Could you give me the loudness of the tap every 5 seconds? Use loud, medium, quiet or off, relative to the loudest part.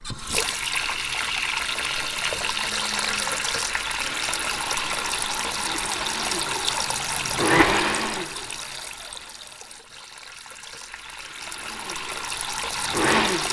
loud, loud, medium.